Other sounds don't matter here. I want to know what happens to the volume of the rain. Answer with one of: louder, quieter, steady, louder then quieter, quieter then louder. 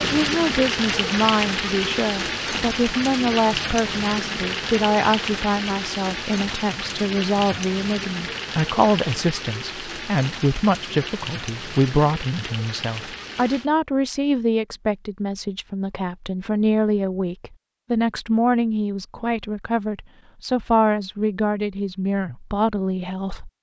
quieter.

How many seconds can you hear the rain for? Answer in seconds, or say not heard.
14 s.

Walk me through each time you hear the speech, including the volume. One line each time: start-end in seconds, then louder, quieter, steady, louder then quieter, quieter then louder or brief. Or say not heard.
0.0-23.5 steady.